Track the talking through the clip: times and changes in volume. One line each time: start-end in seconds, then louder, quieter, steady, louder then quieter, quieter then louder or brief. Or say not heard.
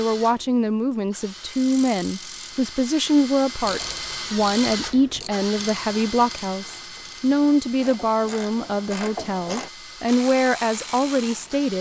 0.0-11.7 steady.